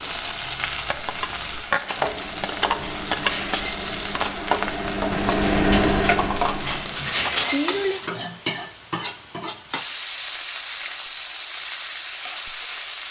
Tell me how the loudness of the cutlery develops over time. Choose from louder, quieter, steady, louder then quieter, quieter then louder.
louder.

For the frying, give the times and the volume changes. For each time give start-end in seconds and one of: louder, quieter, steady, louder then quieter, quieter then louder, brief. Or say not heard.
0.0-13.0 steady.